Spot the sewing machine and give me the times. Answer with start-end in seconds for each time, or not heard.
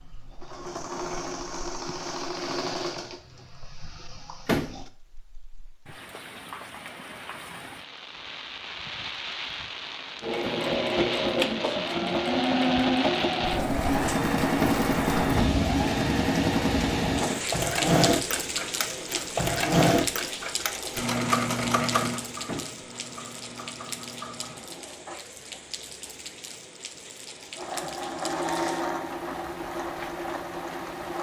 0.0-4.8, 10.2-25.2, 27.5-31.1.